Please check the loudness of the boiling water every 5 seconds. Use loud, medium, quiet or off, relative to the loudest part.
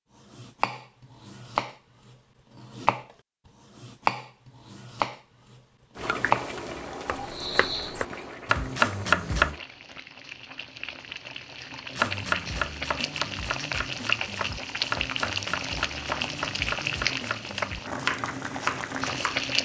off, medium, loud, loud.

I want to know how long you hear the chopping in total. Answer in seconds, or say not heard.
16 s.